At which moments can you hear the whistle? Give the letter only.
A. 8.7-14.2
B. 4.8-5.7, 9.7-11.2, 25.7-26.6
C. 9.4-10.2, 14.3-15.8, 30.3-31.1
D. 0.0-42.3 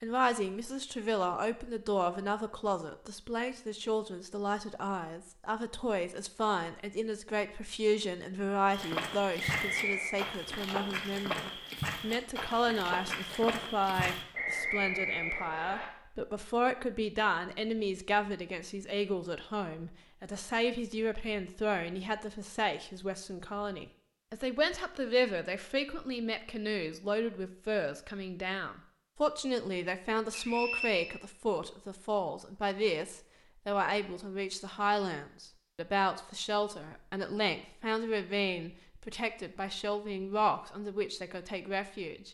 C.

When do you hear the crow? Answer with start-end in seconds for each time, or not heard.
not heard.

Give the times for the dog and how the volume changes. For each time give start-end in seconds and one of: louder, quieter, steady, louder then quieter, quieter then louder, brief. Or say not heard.
not heard.